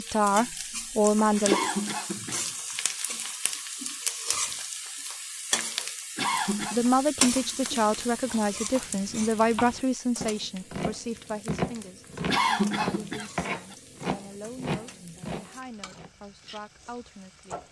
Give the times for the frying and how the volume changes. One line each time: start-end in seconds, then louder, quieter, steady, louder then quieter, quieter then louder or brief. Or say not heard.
0.0-17.6 quieter.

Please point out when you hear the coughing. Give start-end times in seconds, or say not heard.
1.4-2.5, 6.2-6.8, 12.2-13.8.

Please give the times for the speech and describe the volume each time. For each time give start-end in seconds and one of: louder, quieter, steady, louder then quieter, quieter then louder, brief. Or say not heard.
0.0-1.6 brief
6.7-17.6 quieter.